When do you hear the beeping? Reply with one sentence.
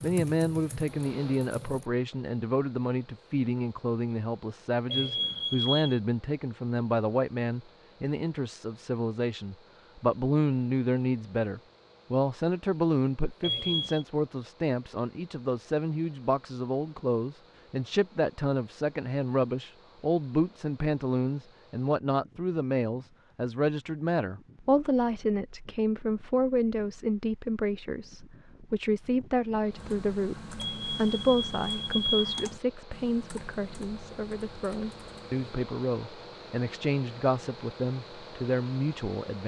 You can hear the beeping from 4.9 to 6.0 s, from 13.4 to 14.1 s and from 30.6 to 32.5 s.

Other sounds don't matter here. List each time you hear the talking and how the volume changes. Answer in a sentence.
You can hear the talking from 0.0 to 39.4 s, at a steady volume.